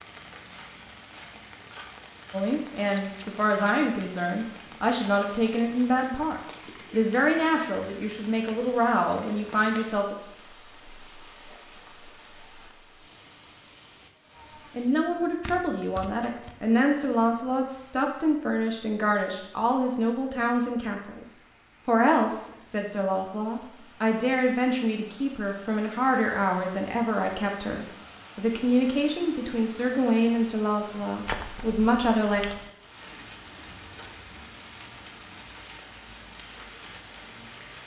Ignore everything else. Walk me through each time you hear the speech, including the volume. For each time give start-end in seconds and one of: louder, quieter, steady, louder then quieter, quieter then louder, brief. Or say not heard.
2.3-10.2 steady
14.8-32.5 steady.